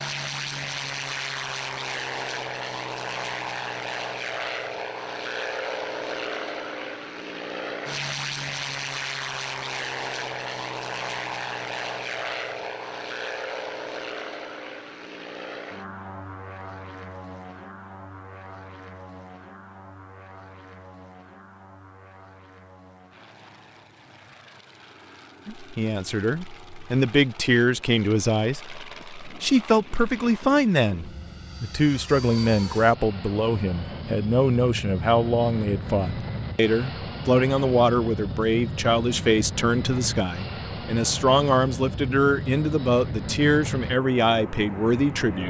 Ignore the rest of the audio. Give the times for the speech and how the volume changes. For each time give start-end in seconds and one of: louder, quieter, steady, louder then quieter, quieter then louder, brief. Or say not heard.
25.4-45.4 steady.